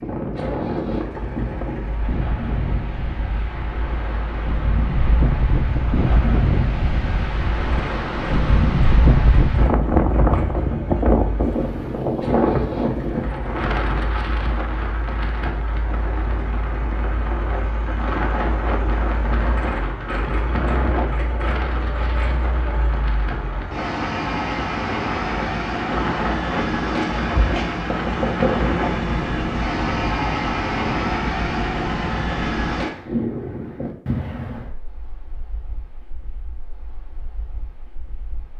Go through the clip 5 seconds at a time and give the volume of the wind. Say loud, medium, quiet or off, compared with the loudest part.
medium, loud, loud, medium, medium, medium, medium, quiet.